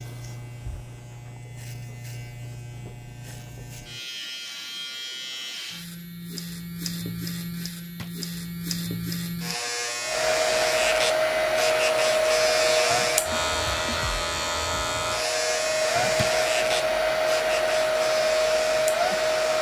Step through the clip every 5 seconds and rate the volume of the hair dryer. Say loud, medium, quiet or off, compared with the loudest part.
off, off, loud, loud.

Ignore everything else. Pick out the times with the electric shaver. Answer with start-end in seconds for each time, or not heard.
0.0-19.5.